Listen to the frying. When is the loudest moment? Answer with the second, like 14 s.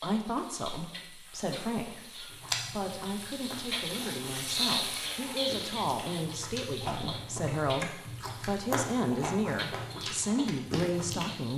5 s.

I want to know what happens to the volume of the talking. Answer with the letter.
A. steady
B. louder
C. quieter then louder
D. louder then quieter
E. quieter
B.